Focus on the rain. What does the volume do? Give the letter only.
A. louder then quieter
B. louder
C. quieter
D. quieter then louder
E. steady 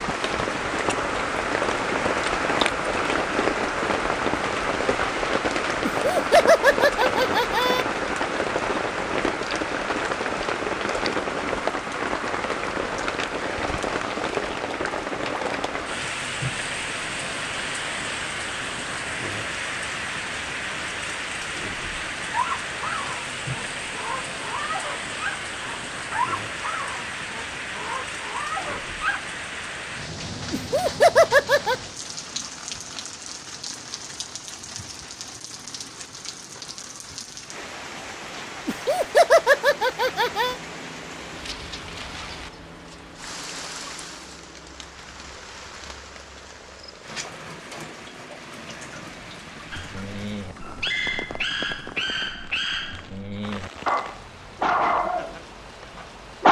C.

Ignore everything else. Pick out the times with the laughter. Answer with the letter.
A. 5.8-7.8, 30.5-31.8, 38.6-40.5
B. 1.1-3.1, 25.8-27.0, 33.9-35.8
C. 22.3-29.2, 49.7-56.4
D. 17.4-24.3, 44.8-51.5
A.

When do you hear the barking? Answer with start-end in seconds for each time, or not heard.
22.3-29.2, 49.7-56.4.